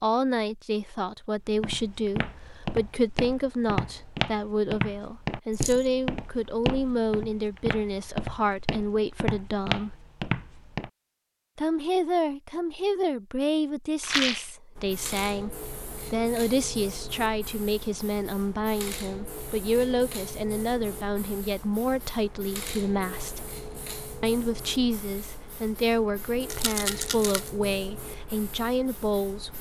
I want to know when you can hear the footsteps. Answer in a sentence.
You can hear the footsteps from 1.6 to 10.9 s.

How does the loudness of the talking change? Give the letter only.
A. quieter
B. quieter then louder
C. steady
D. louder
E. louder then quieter
C.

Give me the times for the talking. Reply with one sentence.
The talking can be heard from 0.0 to 9.9 s, from 11.6 to 23.4 s and from 24.2 to 29.5 s.